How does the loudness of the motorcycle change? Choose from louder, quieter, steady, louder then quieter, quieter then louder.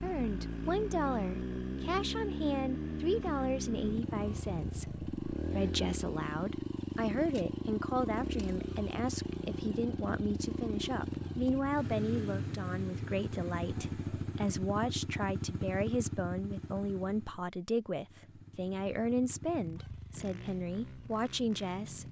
quieter.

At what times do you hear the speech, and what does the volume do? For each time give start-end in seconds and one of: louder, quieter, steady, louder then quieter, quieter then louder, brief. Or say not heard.
0.0-22.0 steady.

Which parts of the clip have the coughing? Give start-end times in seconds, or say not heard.
not heard.